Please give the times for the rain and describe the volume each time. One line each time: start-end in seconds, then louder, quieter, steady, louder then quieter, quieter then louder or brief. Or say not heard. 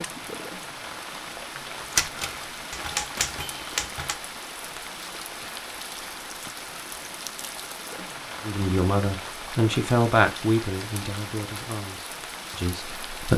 0.0-13.3 steady.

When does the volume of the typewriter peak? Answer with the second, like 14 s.
2 s.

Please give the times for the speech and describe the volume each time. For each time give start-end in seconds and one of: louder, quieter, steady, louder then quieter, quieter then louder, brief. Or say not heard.
8.4-13.3 quieter.